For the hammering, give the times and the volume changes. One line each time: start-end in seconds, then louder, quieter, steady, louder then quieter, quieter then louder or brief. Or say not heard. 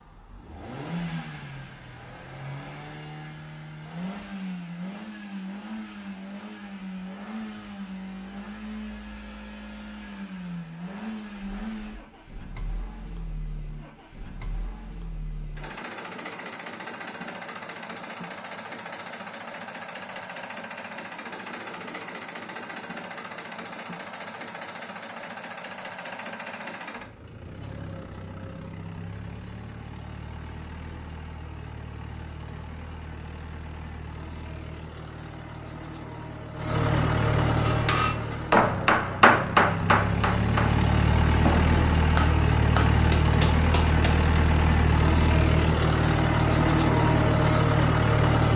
37.6-44.2 quieter.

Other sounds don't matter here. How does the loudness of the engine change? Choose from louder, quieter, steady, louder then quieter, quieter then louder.
louder.